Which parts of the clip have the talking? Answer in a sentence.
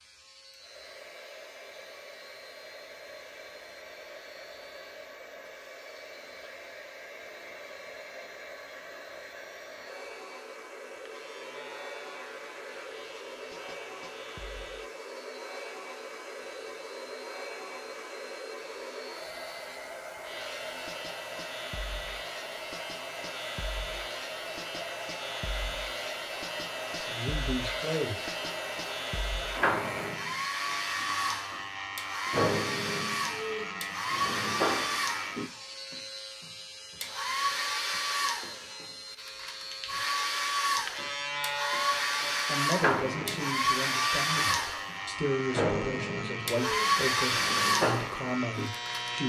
You can hear the talking from 26.9 to 28.3 s and from 42.5 to 49.2 s.